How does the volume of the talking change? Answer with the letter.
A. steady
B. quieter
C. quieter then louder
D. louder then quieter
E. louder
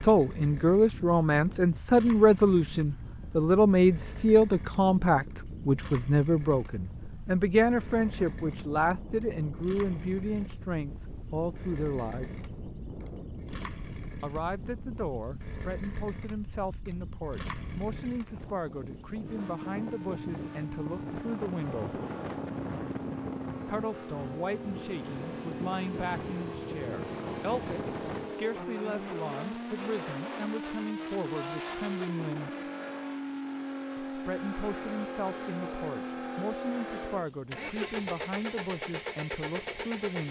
B.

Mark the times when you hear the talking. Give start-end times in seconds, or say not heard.
0.0-12.3, 14.2-22.0, 23.6-32.6, 34.1-40.2.